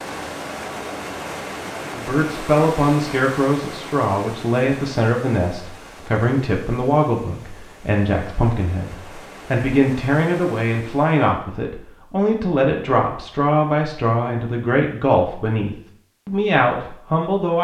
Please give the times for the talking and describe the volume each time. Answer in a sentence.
You can hear the talking from 1.9 to 17.5 s, at a steady volume.